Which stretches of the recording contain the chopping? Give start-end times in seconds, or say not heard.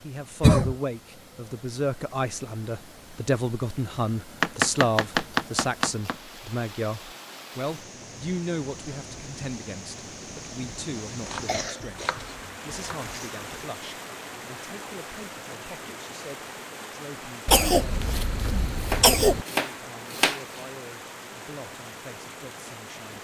4.4-6.2, 11.2-13.2, 18.8-20.6.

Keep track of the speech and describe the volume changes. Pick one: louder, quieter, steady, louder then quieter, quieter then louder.
quieter.